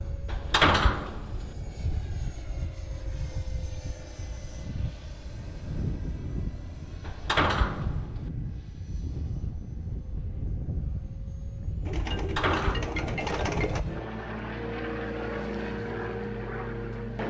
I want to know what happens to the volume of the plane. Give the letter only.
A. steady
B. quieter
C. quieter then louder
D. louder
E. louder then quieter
D.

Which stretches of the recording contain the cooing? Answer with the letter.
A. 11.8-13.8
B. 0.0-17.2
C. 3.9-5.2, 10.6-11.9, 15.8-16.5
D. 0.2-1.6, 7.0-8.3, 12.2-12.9
A.